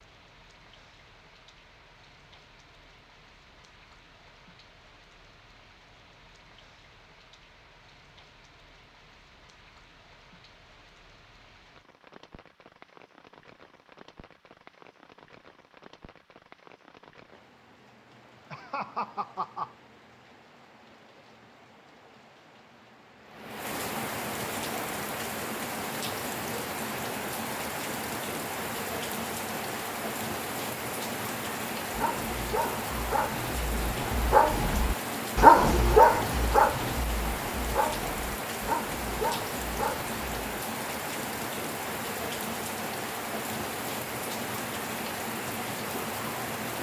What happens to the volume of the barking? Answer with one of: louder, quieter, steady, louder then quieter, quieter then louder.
louder then quieter.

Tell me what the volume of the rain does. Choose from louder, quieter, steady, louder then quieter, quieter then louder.
louder.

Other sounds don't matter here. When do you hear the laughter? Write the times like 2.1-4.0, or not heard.
18.5-19.8.